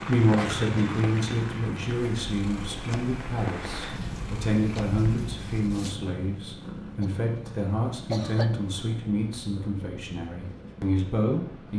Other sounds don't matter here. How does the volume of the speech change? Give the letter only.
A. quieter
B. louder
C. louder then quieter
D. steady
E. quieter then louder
D.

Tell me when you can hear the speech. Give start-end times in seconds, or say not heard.
0.1-11.7.